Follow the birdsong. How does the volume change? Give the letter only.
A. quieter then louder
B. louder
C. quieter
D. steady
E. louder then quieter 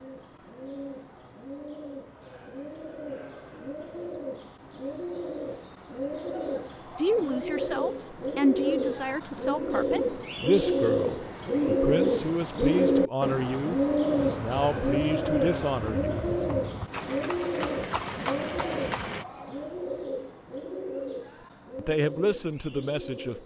E.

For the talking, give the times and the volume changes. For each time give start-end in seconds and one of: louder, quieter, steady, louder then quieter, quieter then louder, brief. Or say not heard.
7.0-16.5 steady
21.8-23.4 brief.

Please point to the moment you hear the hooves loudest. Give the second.
18 s.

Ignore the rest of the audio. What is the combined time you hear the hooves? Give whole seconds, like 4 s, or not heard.
5 s.